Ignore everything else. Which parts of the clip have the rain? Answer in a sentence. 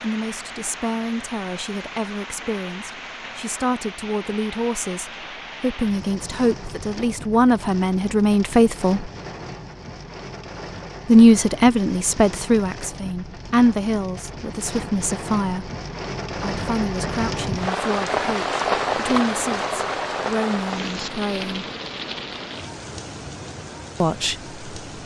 The rain can be heard from 0.0 to 25.0 s.